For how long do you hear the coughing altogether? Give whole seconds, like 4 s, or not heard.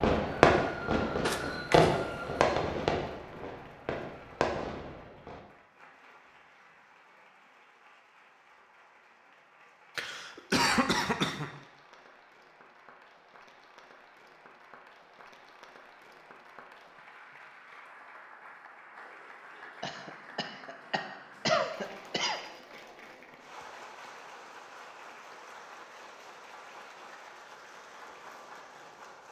5 s.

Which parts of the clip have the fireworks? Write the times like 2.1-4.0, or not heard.
0.0-5.4.